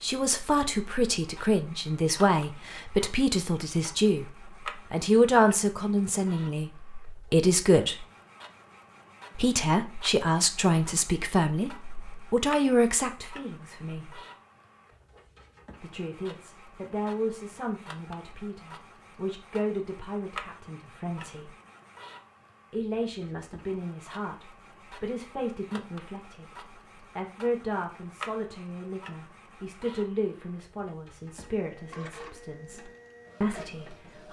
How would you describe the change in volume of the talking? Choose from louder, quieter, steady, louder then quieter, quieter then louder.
quieter.